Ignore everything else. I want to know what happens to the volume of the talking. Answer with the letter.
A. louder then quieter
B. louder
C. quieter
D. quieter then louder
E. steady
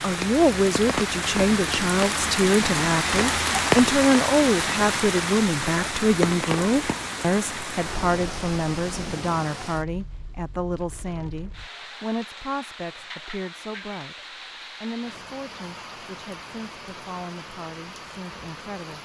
C.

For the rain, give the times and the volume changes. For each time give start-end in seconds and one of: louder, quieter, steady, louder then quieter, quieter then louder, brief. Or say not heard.
0.0-18.9 quieter.